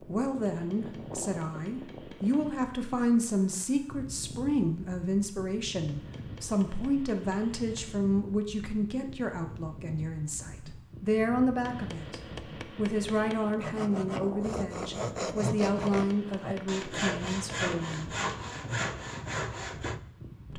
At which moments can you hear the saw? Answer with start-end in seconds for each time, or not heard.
13.6-20.0.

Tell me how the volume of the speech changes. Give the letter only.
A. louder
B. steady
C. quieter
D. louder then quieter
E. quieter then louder
B.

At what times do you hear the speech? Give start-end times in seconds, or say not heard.
0.0-18.1.